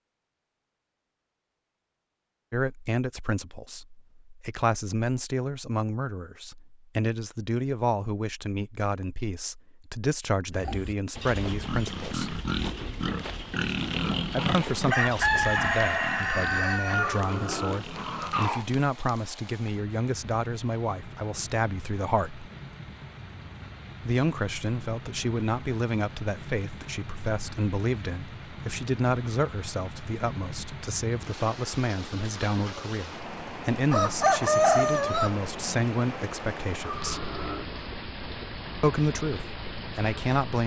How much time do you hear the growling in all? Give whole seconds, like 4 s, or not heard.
3 s.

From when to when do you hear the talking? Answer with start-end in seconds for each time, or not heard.
2.5-12.4, 14.3-22.5, 24.0-37.3, 38.8-40.6.